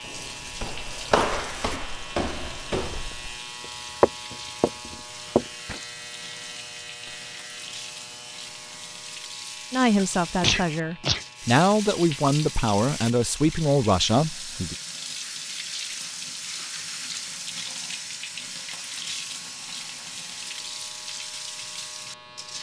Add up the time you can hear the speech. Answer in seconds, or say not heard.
5 s.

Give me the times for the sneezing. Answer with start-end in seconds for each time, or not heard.
9.9-11.2.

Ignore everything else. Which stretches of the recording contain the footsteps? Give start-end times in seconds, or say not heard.
0.1-3.4, 4.0-5.8.